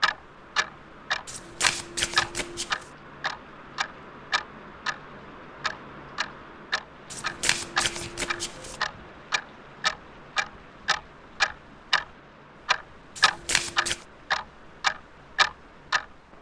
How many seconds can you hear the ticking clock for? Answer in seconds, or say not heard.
15 s.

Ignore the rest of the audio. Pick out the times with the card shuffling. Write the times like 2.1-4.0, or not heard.
1.2-2.9, 7.1-8.8, 13.2-14.0.